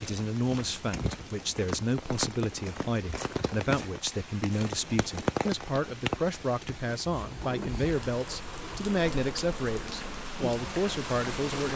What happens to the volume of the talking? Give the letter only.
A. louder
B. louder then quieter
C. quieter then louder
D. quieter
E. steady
E.